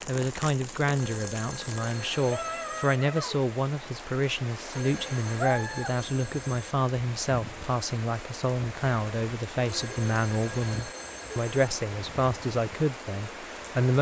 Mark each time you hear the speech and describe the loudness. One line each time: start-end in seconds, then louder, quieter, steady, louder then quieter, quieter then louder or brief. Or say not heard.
0.1-13.9 steady.